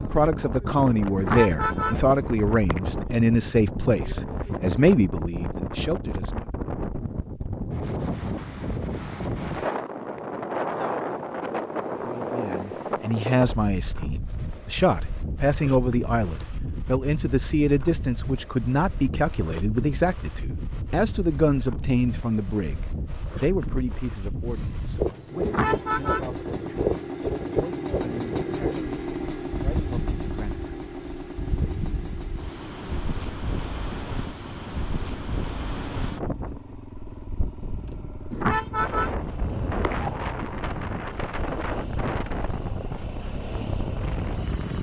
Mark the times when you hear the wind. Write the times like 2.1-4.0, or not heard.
0.0-44.7.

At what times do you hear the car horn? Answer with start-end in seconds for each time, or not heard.
1.1-3.0, 25.4-26.4, 38.3-40.1.